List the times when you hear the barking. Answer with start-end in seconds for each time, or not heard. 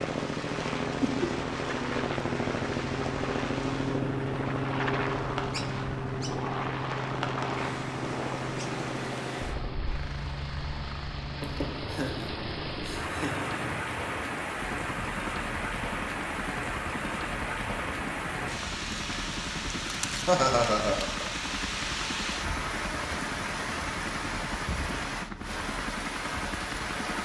not heard.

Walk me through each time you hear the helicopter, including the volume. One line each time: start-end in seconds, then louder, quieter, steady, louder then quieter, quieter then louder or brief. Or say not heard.
0.0-27.2 quieter.